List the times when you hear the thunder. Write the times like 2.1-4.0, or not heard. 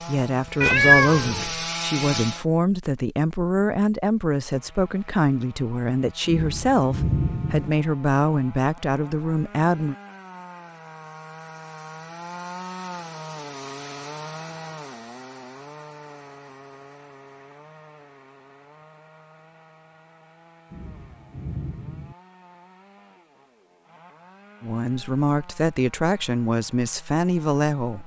6.2-7.7, 20.7-22.1.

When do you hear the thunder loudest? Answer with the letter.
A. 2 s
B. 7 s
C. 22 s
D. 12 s
B.